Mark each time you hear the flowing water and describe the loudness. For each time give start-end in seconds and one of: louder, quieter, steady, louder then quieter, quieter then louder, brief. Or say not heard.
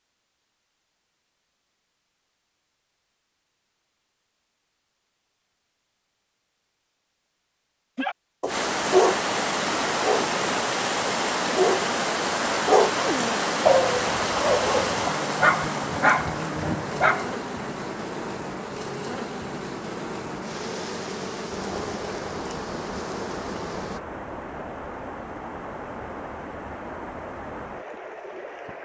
8.4-28.8 quieter.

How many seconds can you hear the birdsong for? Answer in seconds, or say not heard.
not heard.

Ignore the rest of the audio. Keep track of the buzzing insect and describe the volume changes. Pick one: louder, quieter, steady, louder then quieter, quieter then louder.
steady.